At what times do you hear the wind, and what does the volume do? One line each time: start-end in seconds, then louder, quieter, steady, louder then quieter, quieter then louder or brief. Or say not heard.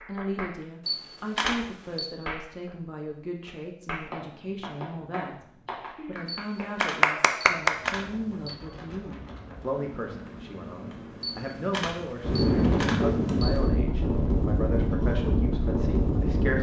7.8-16.5 louder.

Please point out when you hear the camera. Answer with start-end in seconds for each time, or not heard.
0.8-2.1, 6.2-8.6, 11.2-13.6.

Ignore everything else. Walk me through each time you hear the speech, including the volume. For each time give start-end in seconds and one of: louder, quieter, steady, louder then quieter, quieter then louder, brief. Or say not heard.
0.1-16.5 steady.